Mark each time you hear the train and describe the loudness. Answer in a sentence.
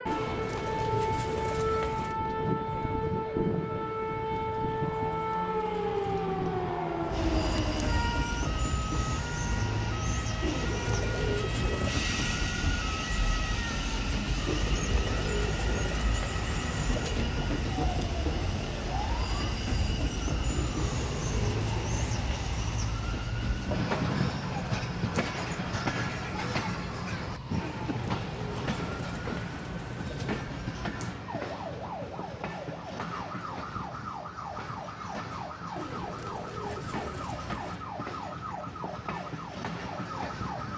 The train can be heard from 7.0 to 40.7 s, getting quieter.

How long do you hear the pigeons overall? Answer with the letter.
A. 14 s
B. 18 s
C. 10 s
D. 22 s
A.